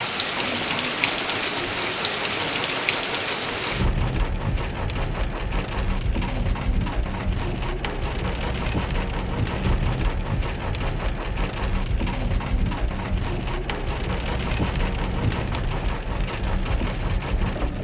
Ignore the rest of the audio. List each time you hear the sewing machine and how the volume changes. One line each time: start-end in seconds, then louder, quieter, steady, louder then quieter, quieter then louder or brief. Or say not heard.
0.0-17.7 steady.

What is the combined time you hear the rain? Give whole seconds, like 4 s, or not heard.
18 s.